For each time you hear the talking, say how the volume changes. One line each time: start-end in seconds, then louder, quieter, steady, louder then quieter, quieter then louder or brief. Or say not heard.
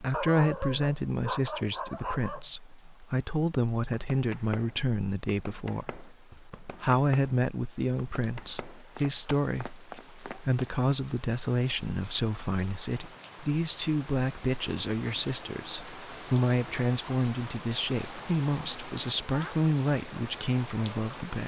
0.0-21.4 steady.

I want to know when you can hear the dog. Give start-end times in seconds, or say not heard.
0.1-2.5.